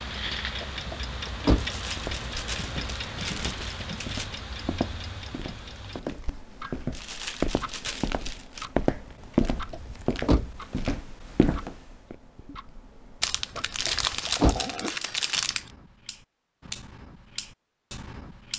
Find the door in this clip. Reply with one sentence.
The door can be heard from 0.6 to 1.8 s, from 9.4 to 10.6 s and from 13.6 to 14.6 s.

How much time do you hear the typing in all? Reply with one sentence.
You can't hear the typing here.